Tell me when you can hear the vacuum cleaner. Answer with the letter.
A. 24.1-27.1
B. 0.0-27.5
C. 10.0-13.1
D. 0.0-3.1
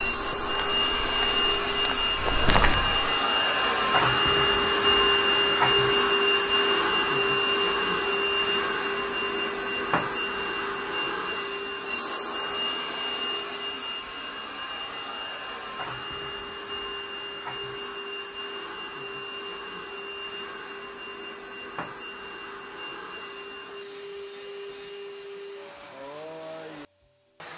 B.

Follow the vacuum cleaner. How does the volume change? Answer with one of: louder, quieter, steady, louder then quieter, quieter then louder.
quieter.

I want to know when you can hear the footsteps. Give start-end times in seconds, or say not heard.
0.0-3.1.